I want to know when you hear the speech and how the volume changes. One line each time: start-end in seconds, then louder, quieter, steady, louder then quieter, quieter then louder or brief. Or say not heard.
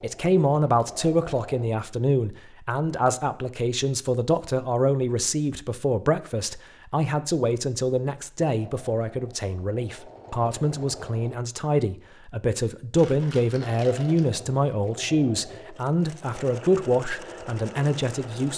0.0-18.5 steady.